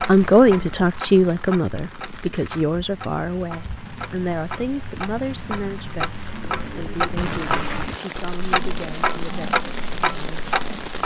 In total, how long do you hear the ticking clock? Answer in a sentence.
The ticking clock can be heard for 11 seconds in total.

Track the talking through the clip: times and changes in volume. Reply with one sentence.
The talking can be heard from 0.0 to 10.4 s, getting quieter.